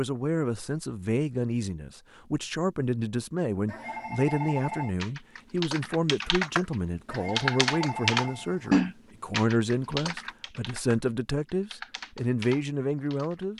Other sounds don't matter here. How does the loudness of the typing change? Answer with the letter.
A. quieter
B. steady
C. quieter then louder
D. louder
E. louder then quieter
E.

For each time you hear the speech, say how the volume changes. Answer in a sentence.
You can hear the speech from 0.0 to 13.5 s, at a steady volume.